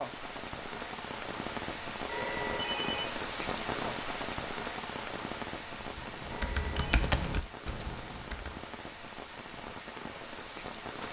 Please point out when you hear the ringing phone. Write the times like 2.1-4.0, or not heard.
2.0-3.1, 6.3-6.8.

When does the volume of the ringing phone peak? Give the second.
3 s.